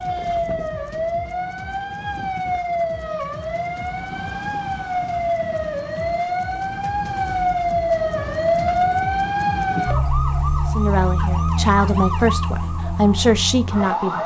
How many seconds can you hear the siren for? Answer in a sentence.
You can hear the siren for 14 seconds altogether.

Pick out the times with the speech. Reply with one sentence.
You can hear the speech from 10.7 to 14.2 s.